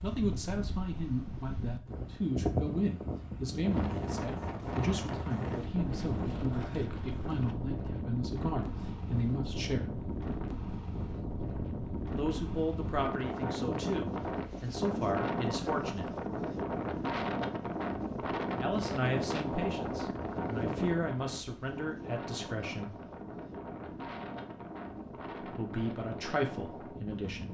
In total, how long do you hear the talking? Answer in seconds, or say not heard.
20 s.